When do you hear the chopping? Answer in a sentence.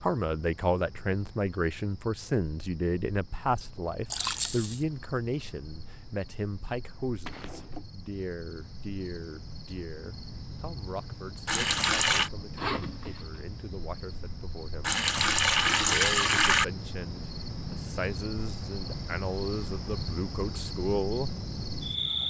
The chopping can't be heard in this clip.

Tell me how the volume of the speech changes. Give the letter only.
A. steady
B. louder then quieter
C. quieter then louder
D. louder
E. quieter
C.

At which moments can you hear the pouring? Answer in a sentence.
The pouring can be heard from 4.1 to 4.8 s, from 11.4 to 12.3 s and from 14.8 to 16.6 s.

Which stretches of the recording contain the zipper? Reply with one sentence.
You can hear the zipper from 7.2 to 7.8 s and from 12.6 to 13.4 s.